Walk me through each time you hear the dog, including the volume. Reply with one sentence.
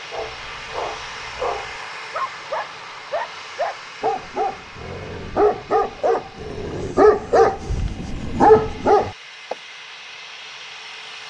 The dog can be heard from 0.1 to 9.6 s, getting louder.